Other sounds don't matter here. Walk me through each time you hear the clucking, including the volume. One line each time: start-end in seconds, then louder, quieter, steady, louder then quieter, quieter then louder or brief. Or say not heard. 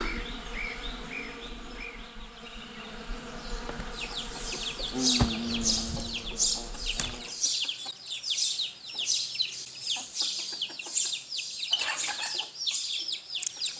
3.9-13.7 steady.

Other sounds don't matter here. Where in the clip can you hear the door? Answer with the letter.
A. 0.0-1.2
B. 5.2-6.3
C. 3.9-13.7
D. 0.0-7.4
B.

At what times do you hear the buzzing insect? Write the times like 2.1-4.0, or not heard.
0.0-7.4.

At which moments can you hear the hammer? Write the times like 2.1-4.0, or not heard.
not heard.